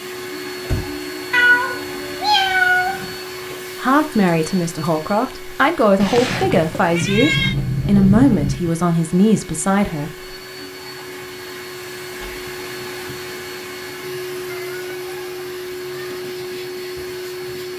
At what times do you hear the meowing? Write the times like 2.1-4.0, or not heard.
1.3-3.1, 6.0-7.5, 14.4-16.2.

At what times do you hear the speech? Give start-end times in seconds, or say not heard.
3.8-10.3.